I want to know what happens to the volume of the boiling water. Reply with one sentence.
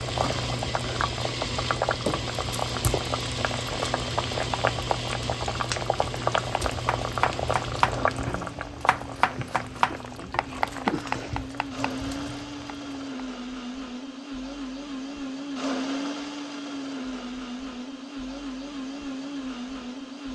The volume of the boiling water goes down.